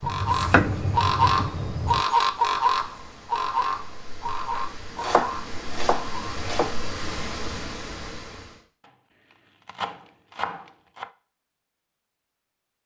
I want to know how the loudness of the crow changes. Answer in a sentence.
The loudness of the crow goes down.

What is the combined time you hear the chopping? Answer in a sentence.
You can hear the chopping for 6 seconds altogether.